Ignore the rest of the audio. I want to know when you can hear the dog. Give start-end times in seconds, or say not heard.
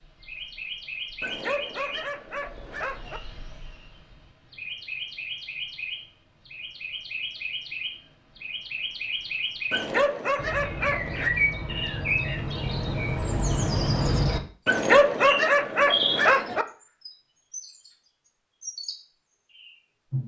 1.2-3.2, 9.7-11.3, 14.7-16.6.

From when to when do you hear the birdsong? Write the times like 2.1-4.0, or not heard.
0.0-20.2.